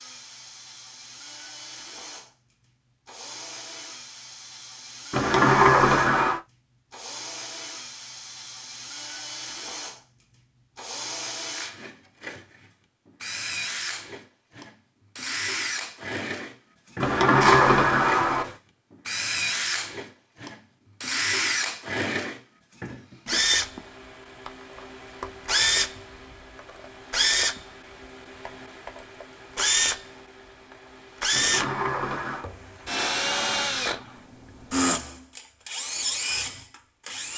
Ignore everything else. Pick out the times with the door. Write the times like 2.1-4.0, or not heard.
5.1-6.4, 17.0-18.6, 31.3-32.5.